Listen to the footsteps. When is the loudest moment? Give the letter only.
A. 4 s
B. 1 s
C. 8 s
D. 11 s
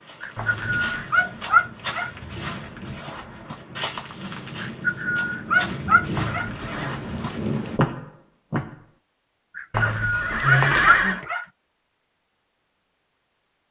C.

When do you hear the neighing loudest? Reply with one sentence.
The loudest moment of the neighing is at 11 seconds.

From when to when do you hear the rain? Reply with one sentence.
You can hear the rain from 0.0 to 7.8 s.